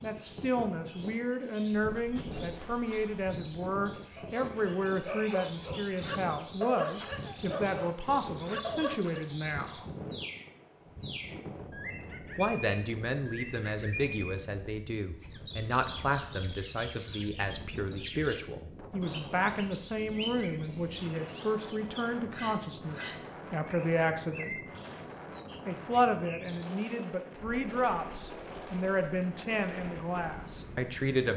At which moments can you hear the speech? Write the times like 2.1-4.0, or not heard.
0.0-9.8, 12.3-24.6, 25.6-31.3.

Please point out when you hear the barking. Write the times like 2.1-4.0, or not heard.
1.9-9.3.